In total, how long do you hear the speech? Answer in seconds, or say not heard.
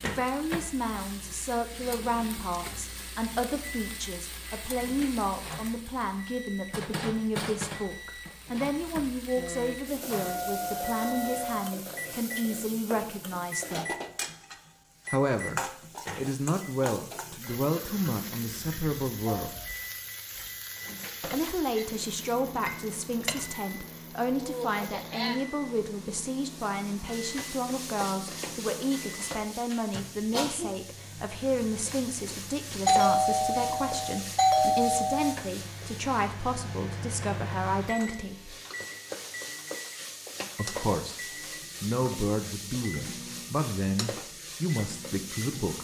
40 s.